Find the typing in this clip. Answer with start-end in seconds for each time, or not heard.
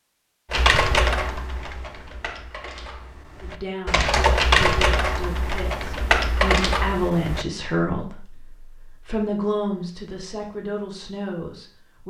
0.5-7.5.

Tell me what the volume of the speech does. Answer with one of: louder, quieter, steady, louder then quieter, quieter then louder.
louder then quieter.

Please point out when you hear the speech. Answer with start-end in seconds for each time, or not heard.
3.4-12.0.